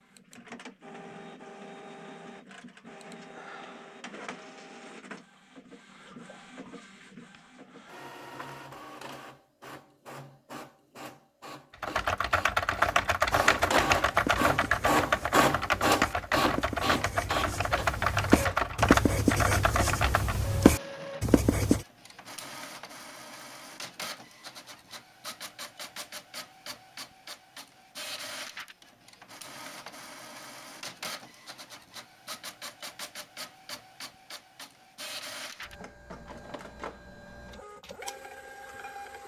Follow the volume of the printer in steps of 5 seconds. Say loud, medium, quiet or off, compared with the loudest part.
quiet, quiet, loud, loud, quiet, quiet, quiet, quiet.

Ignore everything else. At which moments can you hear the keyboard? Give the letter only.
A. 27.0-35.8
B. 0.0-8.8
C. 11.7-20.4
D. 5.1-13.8
C.